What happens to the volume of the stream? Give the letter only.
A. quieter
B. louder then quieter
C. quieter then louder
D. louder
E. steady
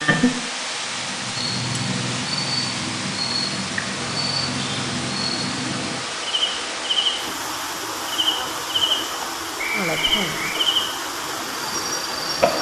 E.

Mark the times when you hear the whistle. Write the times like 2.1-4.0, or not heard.
9.6-10.6.